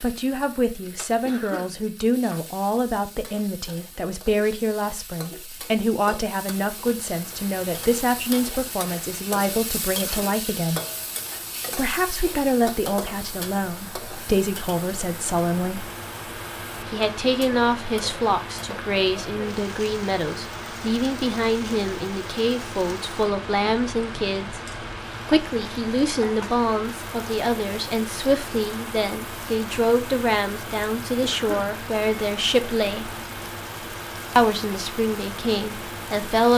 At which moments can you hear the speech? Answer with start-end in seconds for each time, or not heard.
0.0-10.8, 11.8-15.9, 16.8-24.6, 25.2-33.1, 34.4-36.5.